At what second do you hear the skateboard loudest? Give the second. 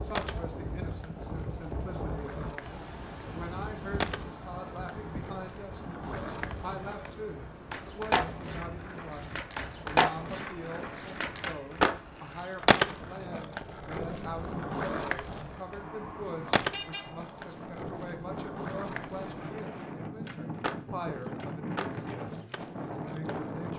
12 s.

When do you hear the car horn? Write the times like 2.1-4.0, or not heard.
16.7-17.6.